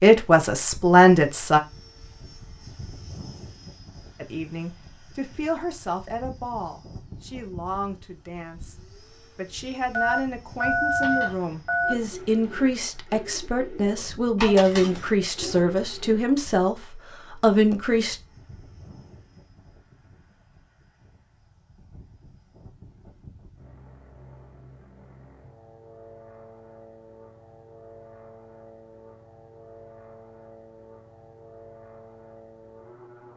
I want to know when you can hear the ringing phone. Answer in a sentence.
You can hear the ringing phone from 9.9 to 11.9 s.